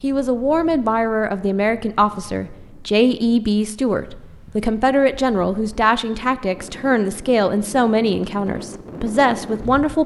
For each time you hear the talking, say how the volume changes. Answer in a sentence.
The talking can be heard from 0.0 to 10.0 s, at a steady volume.